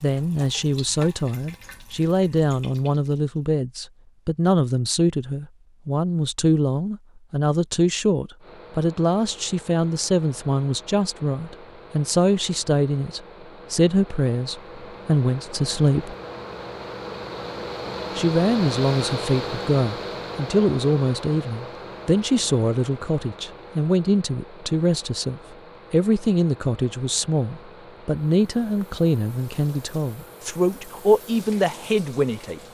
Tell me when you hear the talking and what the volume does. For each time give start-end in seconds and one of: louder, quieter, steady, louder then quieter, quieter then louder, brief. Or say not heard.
0.0-16.1 steady
18.1-32.6 steady.